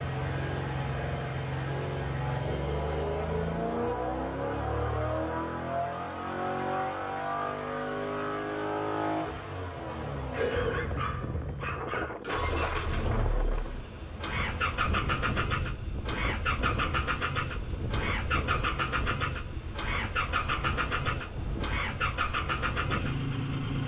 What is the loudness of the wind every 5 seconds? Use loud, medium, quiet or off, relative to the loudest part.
off, off, loud, loud, loud.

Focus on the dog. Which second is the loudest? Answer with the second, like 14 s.
11 s.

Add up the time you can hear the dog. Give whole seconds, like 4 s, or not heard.
2 s.